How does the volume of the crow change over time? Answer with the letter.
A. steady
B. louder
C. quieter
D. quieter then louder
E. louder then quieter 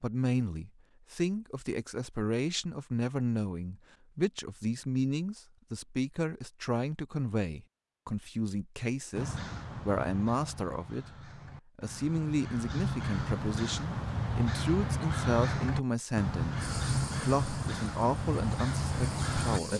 B.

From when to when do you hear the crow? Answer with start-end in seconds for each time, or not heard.
9.2-19.6.